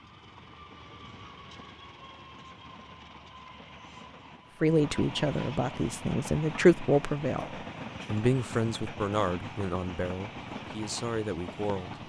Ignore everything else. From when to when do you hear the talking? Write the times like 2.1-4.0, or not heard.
4.6-12.0.